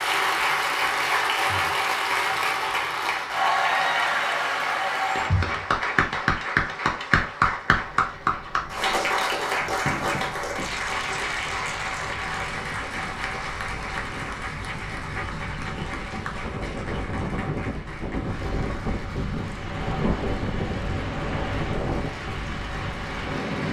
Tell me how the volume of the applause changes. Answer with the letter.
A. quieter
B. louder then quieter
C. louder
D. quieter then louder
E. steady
A.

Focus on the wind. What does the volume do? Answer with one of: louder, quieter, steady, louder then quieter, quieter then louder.
louder.